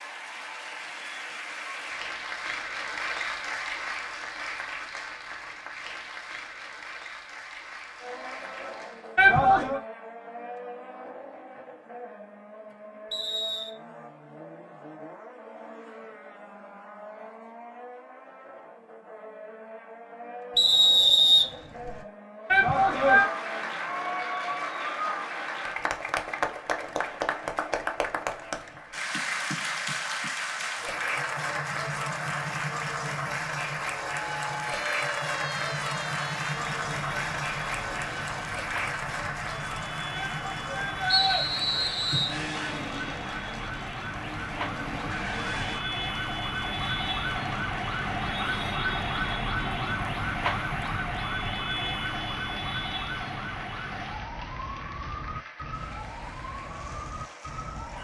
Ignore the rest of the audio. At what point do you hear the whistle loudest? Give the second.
21 s.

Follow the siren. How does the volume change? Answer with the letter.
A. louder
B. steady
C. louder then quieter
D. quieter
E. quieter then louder
C.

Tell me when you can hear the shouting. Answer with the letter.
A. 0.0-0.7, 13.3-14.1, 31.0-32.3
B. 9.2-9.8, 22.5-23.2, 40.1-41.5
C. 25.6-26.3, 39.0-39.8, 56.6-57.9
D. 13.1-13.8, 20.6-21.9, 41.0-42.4
B.